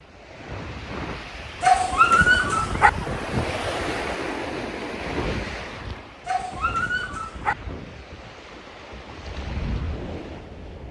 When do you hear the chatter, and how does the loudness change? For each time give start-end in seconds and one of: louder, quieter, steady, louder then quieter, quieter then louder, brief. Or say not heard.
not heard.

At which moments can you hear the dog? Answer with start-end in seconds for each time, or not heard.
1.6-2.9, 6.2-7.5.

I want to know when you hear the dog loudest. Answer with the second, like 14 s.
2 s.